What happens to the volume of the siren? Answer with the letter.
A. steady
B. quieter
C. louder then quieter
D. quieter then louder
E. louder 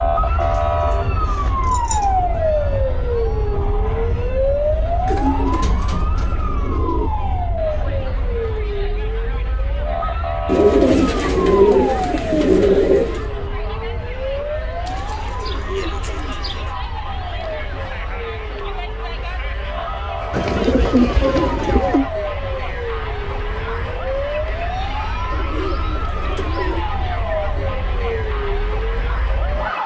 B.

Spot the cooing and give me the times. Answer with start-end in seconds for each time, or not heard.
0.4-2.4, 5.0-7.1, 10.4-13.2, 14.8-16.8, 20.3-22.1, 25.3-26.9.